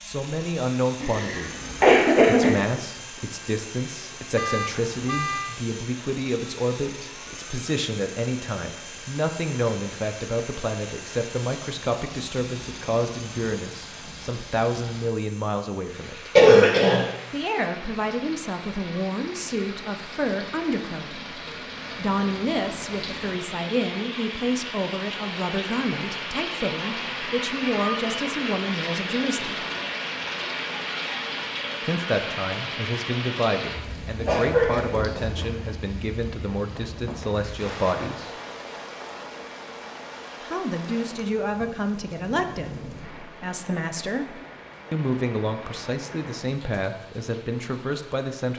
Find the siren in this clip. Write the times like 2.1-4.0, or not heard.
not heard.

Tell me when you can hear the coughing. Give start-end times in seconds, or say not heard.
1.0-2.5, 16.4-17.1, 34.2-35.4.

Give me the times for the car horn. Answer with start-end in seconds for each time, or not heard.
4.3-5.6.